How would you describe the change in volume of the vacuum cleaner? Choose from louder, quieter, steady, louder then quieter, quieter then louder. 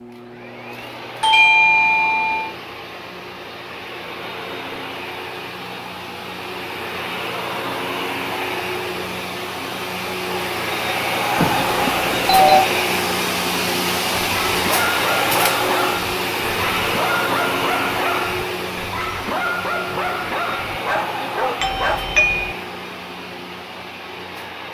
louder then quieter.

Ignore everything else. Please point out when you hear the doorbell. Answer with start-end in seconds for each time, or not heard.
1.2-2.5, 11.3-12.7, 21.6-22.6.